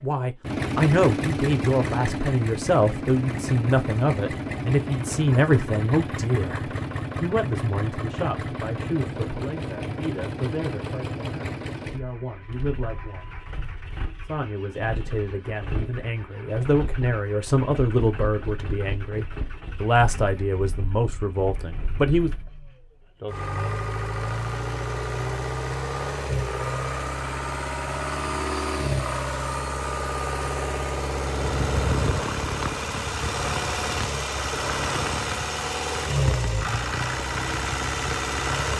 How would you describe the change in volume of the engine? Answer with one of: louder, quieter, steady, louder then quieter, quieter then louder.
quieter then louder.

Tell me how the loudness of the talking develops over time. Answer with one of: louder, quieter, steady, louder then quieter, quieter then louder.
quieter then louder.